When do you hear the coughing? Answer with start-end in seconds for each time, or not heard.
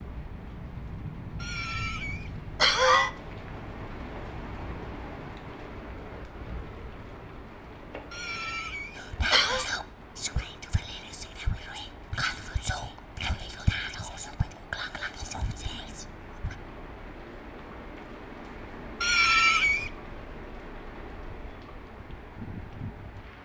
1.4-3.1, 8.1-9.7, 19.0-19.9.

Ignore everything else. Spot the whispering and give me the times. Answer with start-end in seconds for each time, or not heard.
8.9-16.6.